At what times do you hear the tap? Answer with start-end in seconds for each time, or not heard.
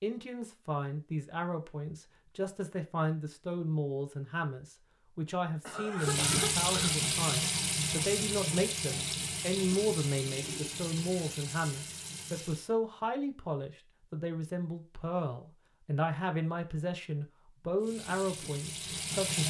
6.0-12.7, 17.8-19.4.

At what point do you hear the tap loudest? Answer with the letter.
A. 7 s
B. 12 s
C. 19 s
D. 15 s
A.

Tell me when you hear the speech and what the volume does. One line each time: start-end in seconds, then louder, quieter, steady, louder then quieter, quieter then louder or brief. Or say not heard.
0.0-19.4 steady.